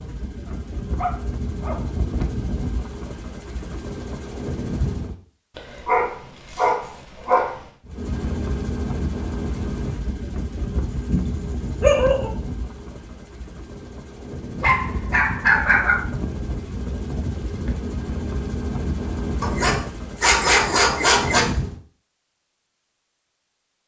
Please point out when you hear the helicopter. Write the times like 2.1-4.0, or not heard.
0.0-5.2, 7.8-21.8.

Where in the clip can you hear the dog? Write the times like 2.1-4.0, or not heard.
0.5-1.9, 5.5-7.7, 10.9-12.3, 14.6-16.1, 19.4-21.4.